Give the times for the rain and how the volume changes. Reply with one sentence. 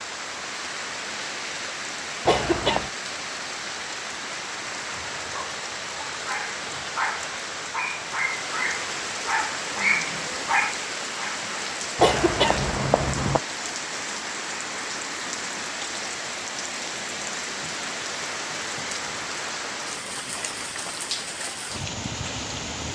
The rain can be heard from 0.0 to 22.9 s, at a steady volume.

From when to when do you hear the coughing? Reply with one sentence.
You can hear the coughing from 2.2 to 2.9 s and from 11.9 to 13.4 s.